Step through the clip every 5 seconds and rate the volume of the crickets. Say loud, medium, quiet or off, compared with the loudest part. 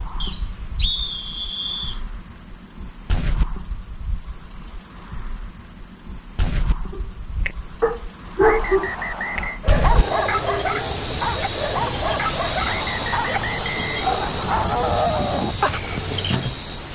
quiet, quiet, loud, loud.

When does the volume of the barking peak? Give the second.
9 s.